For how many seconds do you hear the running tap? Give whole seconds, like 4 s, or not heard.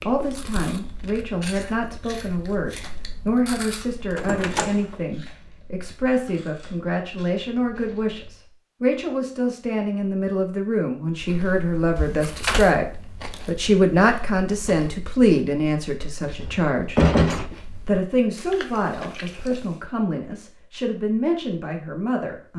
not heard.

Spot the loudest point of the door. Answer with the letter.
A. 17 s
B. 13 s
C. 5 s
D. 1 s
A.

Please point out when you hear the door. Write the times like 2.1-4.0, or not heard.
4.2-5.0, 11.9-12.7, 16.2-17.5.